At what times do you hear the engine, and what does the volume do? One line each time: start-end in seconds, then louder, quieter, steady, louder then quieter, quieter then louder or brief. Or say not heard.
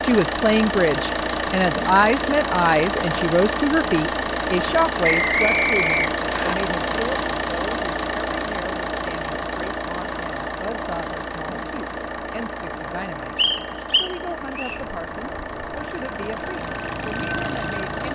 0.0-18.1 quieter.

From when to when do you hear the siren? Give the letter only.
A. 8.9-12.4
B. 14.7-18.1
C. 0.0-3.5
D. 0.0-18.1
B.